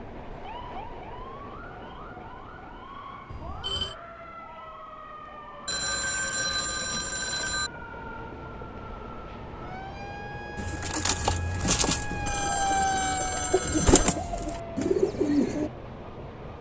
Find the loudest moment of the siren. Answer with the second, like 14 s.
13 s.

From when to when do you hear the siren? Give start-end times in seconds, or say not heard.
0.2-14.9.